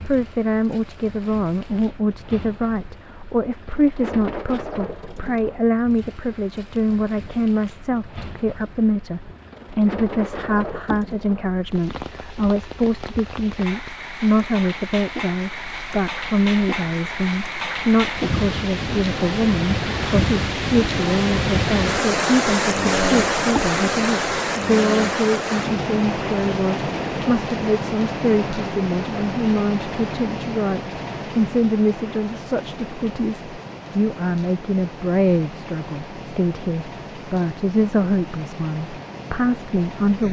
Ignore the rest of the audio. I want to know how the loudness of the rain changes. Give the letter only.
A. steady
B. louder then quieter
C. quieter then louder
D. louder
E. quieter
B.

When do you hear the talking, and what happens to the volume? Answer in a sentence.
You can hear the talking from 0.0 to 40.2 s, at a steady volume.